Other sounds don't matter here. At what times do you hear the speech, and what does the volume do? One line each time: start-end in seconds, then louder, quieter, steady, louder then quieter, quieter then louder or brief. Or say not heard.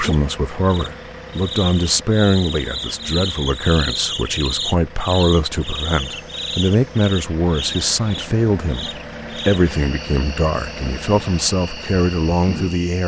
0.0-13.0 steady.